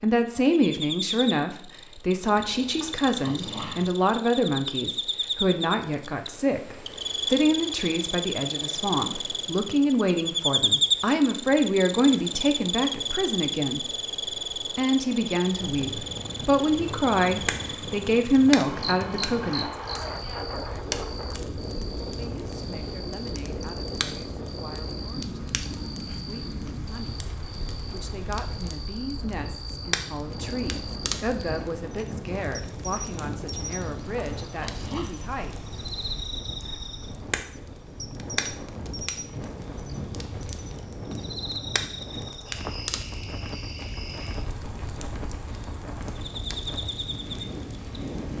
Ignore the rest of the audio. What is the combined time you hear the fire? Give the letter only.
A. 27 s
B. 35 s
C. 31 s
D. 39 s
C.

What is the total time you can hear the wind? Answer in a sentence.
The wind can be heard for 33 seconds in total.